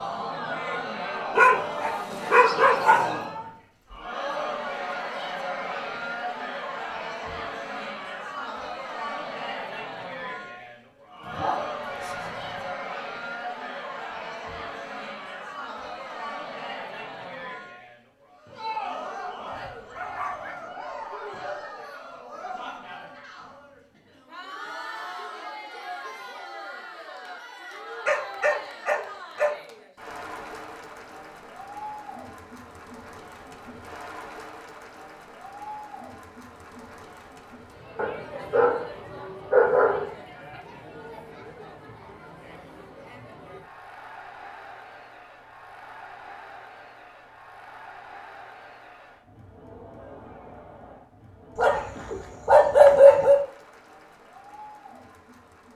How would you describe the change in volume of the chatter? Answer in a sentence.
The loudness of the chatter goes down.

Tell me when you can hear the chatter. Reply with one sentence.
The chatter can be heard from 0.0 to 55.7 s.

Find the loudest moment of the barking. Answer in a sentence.
The volume of the barking peaks at 53 seconds.